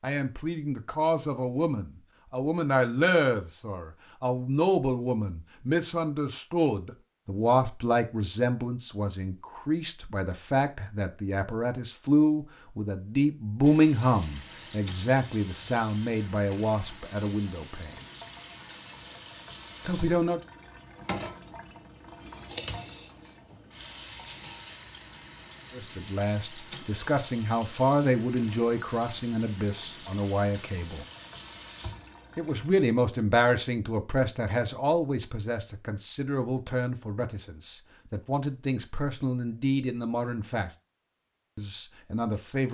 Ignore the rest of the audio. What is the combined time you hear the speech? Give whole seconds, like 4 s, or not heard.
33 s.